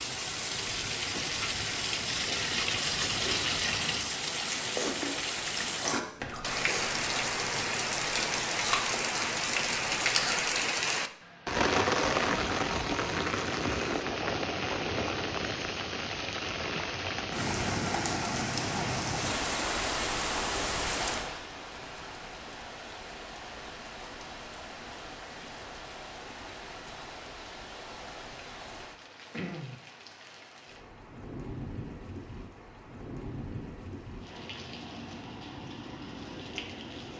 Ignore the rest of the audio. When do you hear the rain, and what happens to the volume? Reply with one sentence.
You can hear the rain from 0.0 to 37.1 s, getting quieter.